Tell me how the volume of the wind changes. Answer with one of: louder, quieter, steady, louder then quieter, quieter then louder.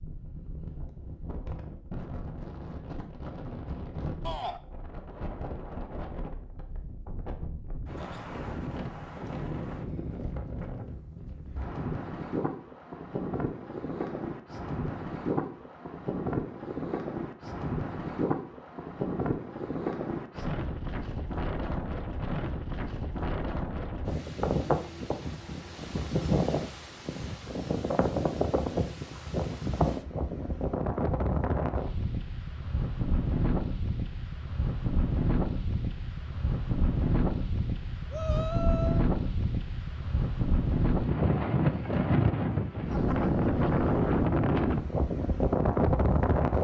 louder.